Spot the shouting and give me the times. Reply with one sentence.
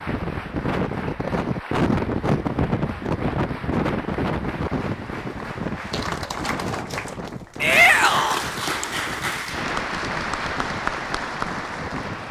The shouting can be heard from 7.6 to 8.4 s.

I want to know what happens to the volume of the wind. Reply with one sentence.
The volume of the wind goes down.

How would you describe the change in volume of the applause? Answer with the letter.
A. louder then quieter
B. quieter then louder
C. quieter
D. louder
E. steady
D.